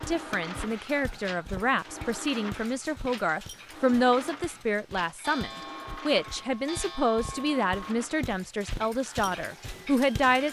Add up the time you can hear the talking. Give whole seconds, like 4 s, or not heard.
10 s.